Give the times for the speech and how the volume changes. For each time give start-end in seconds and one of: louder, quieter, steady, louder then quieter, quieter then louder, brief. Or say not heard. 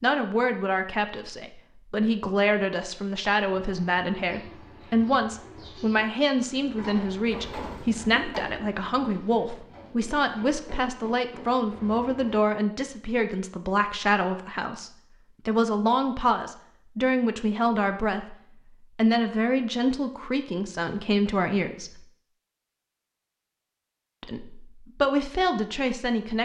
0.0-22.1 steady
24.2-26.4 brief.